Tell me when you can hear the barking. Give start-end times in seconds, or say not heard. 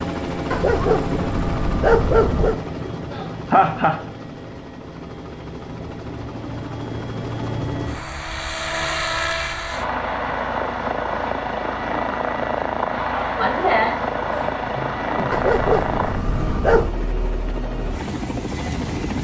0.5-2.6, 15.3-16.9.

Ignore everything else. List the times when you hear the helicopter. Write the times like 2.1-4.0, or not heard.
0.0-19.1.